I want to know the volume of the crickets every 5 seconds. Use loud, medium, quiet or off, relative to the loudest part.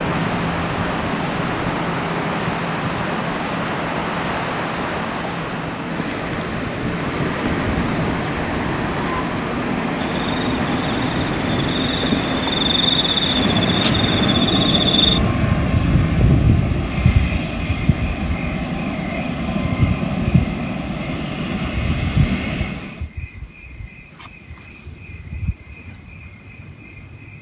off, off, loud, loud, medium, quiet.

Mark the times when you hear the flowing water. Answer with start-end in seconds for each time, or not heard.
0.0-14.3.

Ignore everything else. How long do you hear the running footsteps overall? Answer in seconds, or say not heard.
not heard.